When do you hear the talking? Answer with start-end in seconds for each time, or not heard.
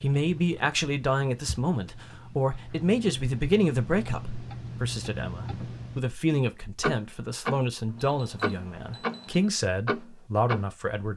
0.0-11.1.